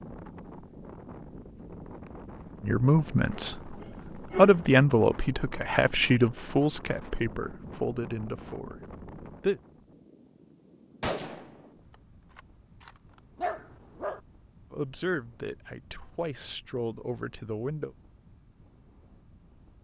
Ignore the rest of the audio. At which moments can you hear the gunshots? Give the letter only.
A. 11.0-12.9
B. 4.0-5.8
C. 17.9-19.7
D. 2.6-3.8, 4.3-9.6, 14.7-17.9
A.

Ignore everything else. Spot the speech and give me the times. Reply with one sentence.
You can hear the speech from 2.6 to 3.8 s, from 4.3 to 9.6 s and from 14.7 to 17.9 s.